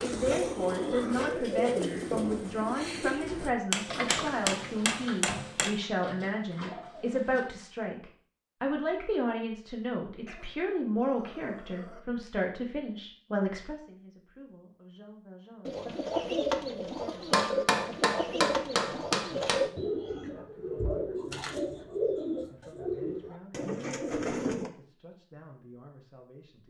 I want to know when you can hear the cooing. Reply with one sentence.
The cooing can be heard from 0.0 to 7.5 s and from 15.7 to 24.7 s.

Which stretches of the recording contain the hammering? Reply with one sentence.
You can hear the hammering from 3.7 to 5.7 s and from 17.3 to 19.6 s.